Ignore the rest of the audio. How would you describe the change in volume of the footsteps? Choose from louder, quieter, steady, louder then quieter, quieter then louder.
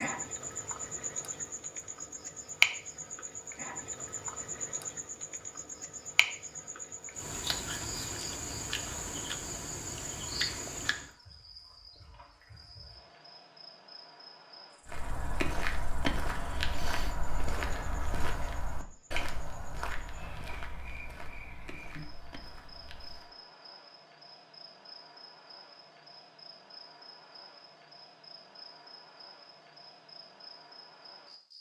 quieter.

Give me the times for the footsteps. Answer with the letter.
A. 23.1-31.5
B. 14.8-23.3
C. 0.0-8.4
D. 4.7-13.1
B.